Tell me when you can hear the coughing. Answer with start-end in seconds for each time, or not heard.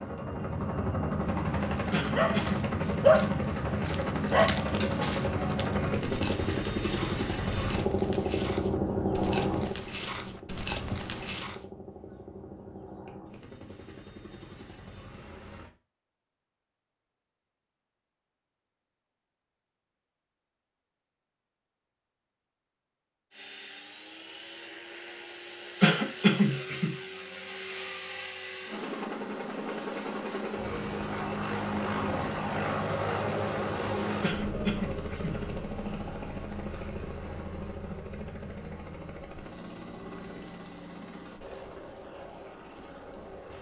1.9-2.6, 25.8-26.9, 34.2-35.4.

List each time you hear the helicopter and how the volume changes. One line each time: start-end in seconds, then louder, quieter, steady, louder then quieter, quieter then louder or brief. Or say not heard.
0.0-15.7 quieter
23.3-43.5 louder then quieter.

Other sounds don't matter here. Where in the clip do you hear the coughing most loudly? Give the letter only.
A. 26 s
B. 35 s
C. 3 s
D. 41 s
A.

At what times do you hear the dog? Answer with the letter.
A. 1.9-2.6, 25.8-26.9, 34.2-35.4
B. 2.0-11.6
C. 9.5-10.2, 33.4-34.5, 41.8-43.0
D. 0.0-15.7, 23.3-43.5
B.